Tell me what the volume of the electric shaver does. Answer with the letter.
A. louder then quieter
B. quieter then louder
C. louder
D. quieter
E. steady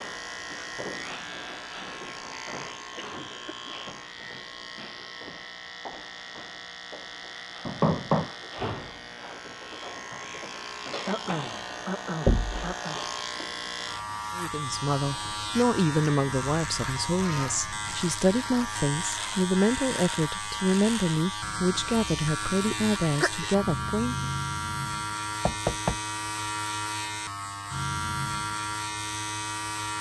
C.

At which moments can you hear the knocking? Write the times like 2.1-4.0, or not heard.
7.7-8.3, 12.2-12.7, 25.4-25.9.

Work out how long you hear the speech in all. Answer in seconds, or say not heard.
10 s.